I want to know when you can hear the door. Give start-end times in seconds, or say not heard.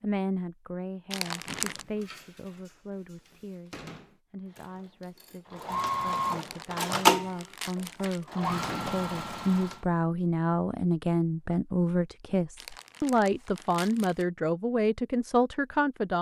1.4-4.2, 8.4-9.0.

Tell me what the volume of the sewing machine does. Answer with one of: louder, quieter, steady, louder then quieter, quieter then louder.
louder then quieter.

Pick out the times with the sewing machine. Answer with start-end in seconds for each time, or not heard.
4.5-9.8.